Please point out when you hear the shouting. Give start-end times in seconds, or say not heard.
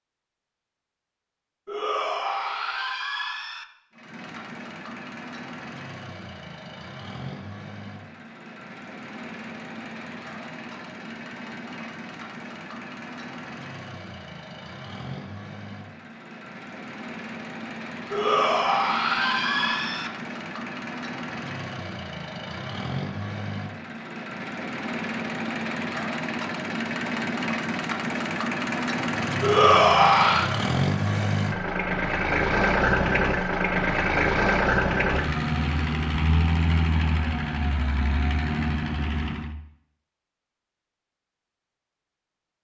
1.6-3.6, 18.1-20.1, 29.4-30.5.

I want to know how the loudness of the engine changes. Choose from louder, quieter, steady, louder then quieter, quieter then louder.
louder.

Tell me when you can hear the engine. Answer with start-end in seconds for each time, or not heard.
3.9-39.5.